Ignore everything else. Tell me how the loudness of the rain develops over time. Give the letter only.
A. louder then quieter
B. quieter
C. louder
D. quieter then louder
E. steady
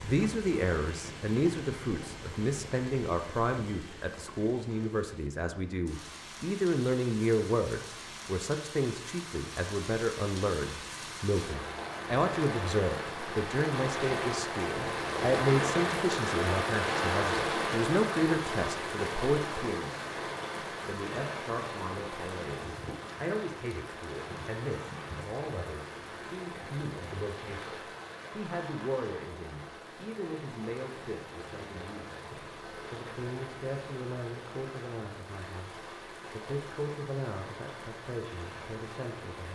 A.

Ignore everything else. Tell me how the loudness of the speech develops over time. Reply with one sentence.
The volume of the speech goes down.